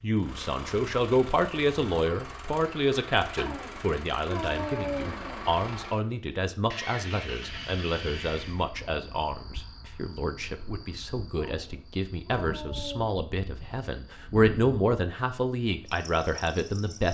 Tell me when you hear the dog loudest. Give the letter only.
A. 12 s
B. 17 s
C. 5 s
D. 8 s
C.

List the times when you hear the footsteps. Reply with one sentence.
The footsteps can't be heard in this clip.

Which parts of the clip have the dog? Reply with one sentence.
You can hear the dog from 3.4 to 5.5 s and from 11.3 to 13.1 s.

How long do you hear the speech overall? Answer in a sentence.
You can hear the speech for 17 seconds altogether.